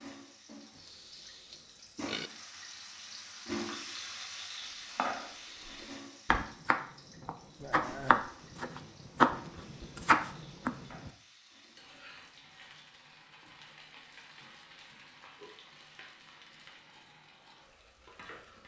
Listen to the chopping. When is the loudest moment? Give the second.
9 s.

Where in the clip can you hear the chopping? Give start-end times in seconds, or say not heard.
5.0-11.1.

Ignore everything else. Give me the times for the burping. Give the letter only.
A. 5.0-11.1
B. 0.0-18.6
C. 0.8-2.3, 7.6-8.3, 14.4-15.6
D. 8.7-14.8
C.